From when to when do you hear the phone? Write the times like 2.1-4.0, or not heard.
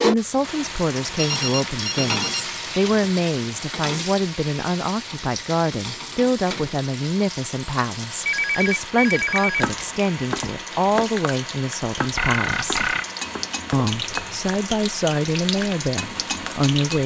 1.1-3.1, 8.2-9.7, 12.1-13.1.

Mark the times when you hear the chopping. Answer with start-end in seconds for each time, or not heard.
9.6-11.1, 11.9-14.6.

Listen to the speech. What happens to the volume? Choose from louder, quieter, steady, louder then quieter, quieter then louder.
steady.